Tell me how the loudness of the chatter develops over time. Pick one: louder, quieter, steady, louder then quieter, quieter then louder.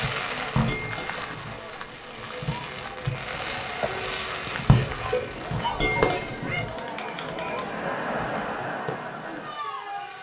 louder.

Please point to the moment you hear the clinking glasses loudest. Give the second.
6 s.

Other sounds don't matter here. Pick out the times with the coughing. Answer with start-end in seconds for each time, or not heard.
4.7-5.5.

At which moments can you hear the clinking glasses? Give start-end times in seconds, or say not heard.
0.6-2.2, 5.7-6.7.